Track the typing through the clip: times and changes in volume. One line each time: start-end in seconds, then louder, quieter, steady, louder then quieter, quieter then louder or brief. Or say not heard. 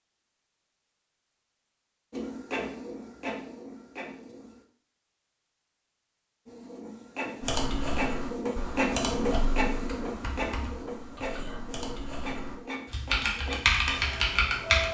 7.4-14.9 quieter then louder.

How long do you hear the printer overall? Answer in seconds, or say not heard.
11 s.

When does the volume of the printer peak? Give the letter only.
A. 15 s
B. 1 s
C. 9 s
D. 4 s
C.